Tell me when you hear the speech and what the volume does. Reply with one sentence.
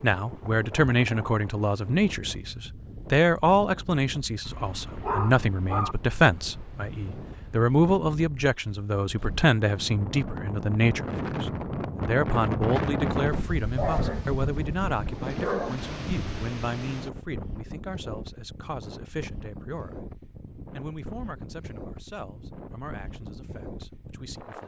You can hear the speech from 0.0 to 24.6 s, getting quieter.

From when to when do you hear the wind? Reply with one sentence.
The wind can be heard from 0.0 to 24.6 s.